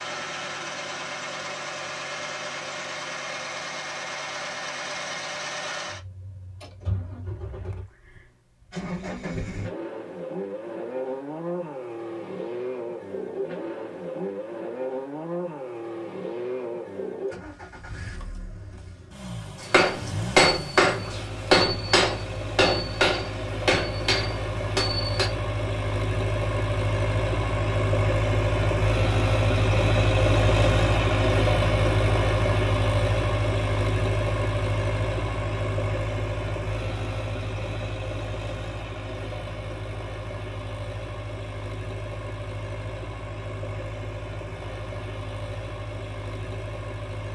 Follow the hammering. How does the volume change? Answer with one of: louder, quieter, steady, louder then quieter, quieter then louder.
quieter.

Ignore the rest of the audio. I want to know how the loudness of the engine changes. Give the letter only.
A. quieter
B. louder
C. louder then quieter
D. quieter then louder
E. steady
C.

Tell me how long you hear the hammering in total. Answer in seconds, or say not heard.
6 s.